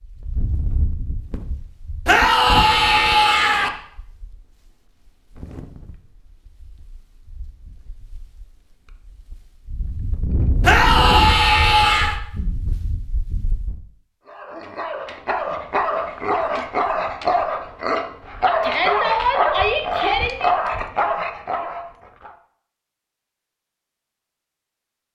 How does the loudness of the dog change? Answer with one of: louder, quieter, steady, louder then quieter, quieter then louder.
steady.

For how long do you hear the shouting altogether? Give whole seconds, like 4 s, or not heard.
5 s.